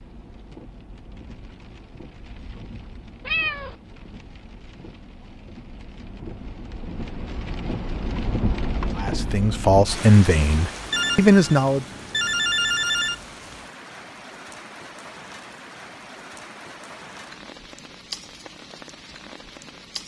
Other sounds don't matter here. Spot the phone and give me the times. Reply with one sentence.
You can hear the phone from 10.9 to 13.2 s.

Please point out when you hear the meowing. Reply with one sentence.
You can hear the meowing from 3.2 to 3.8 s.